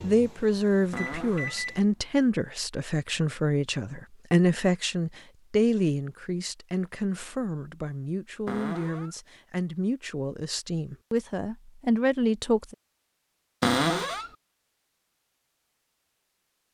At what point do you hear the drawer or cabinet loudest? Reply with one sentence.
The loudest moment of the drawer or cabinet is at 14 seconds.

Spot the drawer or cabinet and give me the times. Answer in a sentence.
The drawer or cabinet can be heard from 0.9 to 1.6 s, from 8.4 to 9.2 s and from 13.6 to 14.3 s.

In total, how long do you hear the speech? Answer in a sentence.
You can hear the speech for 13 seconds altogether.